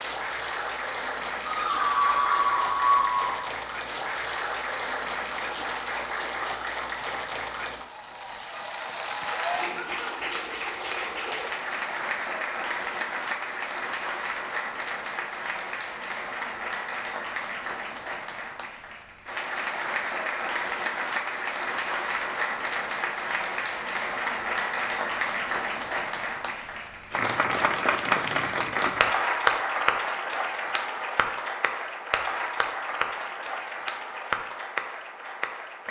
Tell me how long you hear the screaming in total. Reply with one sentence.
The screaming can be heard for 2 seconds in total.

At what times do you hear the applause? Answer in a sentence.
You can hear the applause from 0.0 to 35.8 s.